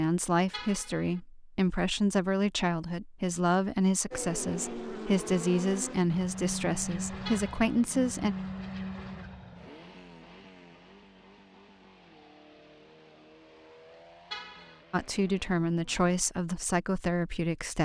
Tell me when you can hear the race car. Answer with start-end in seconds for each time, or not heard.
4.1-16.2.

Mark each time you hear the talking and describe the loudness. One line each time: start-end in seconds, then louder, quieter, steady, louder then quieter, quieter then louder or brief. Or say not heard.
0.0-8.3 steady
14.9-17.8 brief.